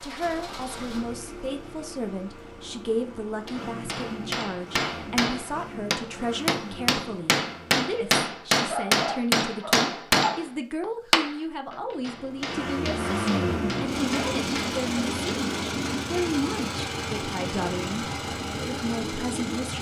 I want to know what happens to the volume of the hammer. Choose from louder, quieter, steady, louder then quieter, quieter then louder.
louder then quieter.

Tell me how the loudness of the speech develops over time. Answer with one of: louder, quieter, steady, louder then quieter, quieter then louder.
steady.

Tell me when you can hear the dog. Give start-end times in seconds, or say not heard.
8.6-10.3.